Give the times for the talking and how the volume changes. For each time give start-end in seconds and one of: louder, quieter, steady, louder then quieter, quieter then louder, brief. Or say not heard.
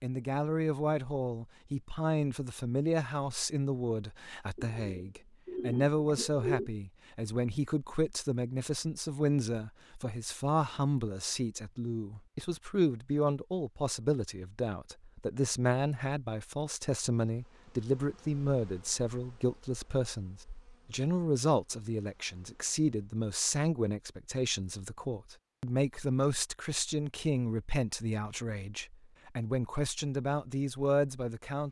0.0-31.6 steady.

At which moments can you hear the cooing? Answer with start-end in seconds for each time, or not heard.
4.5-6.7.